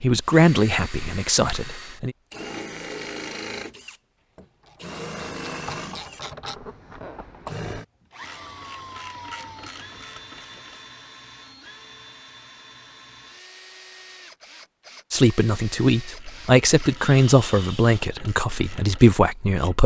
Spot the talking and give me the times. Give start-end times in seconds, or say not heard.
0.0-2.1, 15.1-19.8.